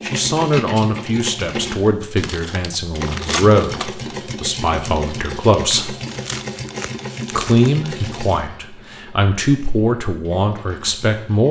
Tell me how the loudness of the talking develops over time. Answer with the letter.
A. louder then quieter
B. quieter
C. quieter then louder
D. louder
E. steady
E.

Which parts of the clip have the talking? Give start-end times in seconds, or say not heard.
0.0-6.0, 7.3-11.4.